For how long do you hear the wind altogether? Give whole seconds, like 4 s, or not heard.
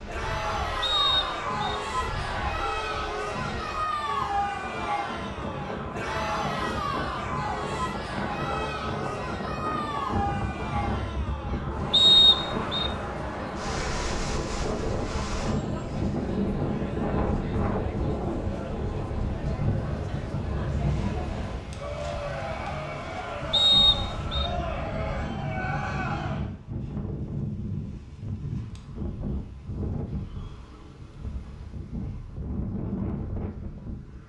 34 s.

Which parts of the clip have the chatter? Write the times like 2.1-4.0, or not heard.
0.1-26.5.